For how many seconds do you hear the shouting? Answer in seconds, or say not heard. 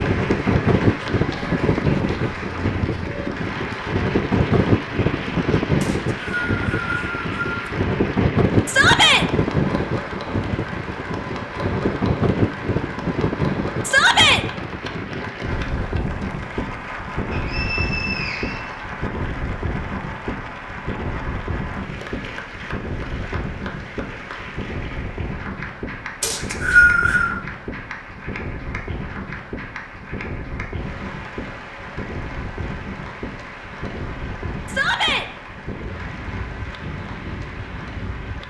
2 s.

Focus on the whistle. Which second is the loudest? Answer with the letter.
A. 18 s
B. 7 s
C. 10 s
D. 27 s
D.